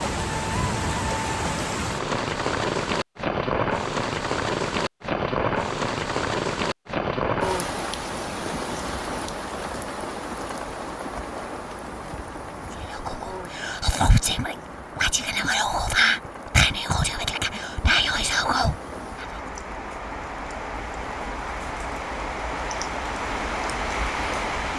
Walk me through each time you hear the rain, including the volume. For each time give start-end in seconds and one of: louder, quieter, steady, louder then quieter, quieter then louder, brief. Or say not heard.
0.0-24.7 quieter then louder.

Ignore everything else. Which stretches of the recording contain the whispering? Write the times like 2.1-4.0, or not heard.
12.7-19.4.